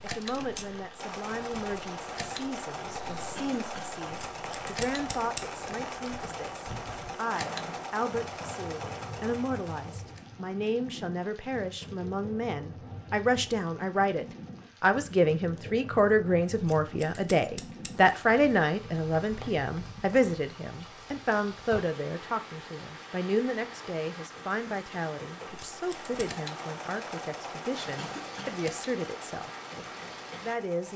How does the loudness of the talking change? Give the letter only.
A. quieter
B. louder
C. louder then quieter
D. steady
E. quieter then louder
C.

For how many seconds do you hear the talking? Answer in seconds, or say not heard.
31 s.